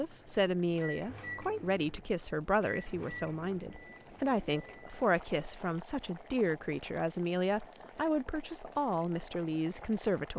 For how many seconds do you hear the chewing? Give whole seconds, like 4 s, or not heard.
not heard.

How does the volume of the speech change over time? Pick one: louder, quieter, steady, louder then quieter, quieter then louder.
steady.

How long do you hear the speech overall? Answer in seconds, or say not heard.
10 s.